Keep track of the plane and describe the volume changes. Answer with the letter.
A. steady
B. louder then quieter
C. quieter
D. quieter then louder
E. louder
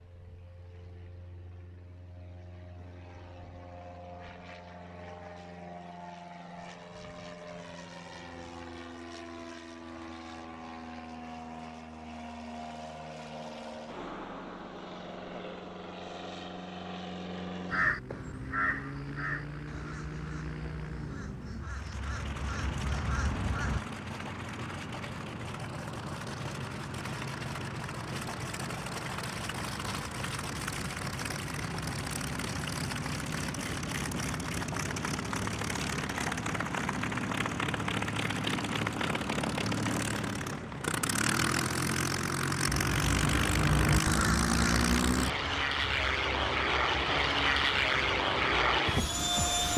E.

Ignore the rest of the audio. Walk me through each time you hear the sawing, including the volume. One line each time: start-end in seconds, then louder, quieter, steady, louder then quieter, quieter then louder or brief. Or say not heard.
not heard.